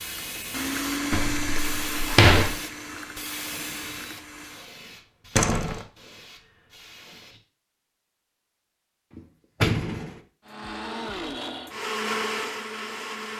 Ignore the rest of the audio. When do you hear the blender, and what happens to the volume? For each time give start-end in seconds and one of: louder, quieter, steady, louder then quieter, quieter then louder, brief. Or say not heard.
0.0-4.7 quieter
10.4-13.3 brief.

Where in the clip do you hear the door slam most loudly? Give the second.
2 s.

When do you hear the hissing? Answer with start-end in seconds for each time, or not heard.
0.0-7.4.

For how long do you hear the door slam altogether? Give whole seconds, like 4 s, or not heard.
3 s.